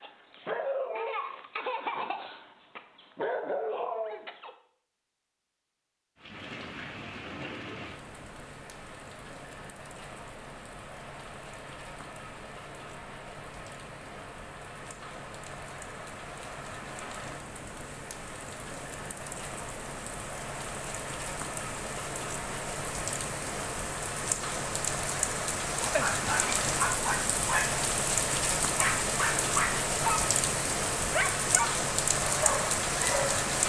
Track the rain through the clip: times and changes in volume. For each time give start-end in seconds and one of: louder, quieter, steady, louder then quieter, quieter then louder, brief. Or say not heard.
6.2-33.6 louder.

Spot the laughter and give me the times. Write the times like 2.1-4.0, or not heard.
not heard.